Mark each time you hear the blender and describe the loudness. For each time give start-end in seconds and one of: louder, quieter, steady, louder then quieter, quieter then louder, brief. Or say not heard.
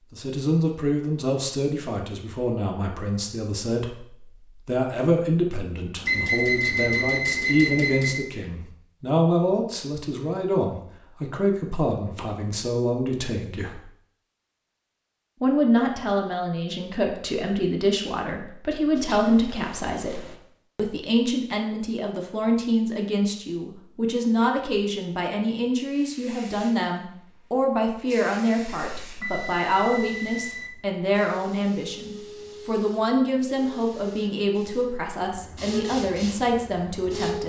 not heard.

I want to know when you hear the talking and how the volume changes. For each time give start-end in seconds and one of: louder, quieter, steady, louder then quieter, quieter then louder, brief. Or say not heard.
0.1-13.8 steady
15.4-37.4 steady.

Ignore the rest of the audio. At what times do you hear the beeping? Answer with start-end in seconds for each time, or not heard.
6.0-8.2, 18.9-20.5, 28.9-30.7.